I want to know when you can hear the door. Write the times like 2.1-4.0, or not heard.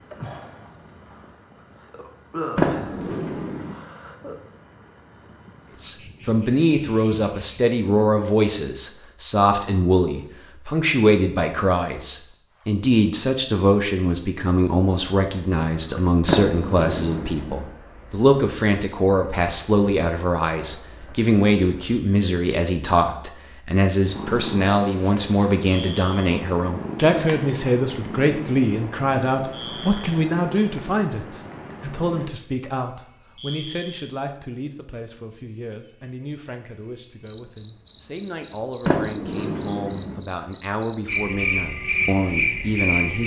2.5-3.8, 16.2-17.6, 38.9-40.2.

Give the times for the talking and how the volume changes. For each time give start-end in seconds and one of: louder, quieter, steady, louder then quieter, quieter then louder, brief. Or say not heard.
5.8-43.2 quieter.